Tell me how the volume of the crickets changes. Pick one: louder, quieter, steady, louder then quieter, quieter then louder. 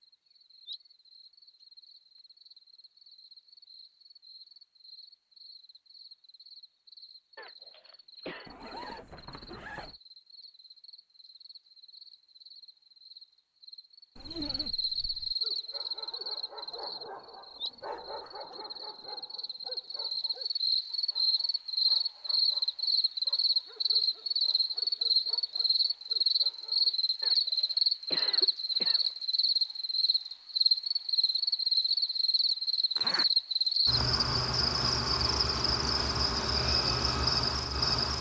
louder.